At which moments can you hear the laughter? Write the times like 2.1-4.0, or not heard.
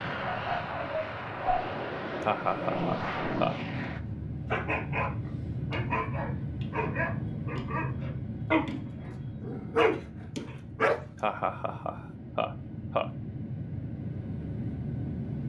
2.2-3.5, 11.2-13.1.